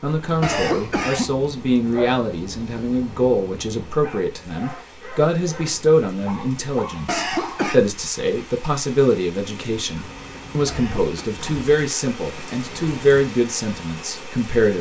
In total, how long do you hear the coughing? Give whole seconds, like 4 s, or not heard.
2 s.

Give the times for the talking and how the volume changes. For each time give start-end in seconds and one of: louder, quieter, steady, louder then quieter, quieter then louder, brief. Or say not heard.
0.0-14.7 steady.